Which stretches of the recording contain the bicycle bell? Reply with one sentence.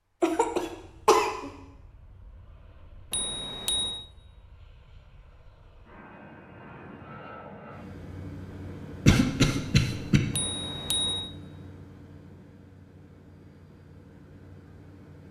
The bicycle bell can be heard from 3.1 to 4.0 s and from 10.3 to 11.3 s.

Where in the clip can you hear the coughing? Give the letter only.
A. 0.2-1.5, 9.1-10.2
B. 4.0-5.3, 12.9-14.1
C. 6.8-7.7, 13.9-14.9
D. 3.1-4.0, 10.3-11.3
A.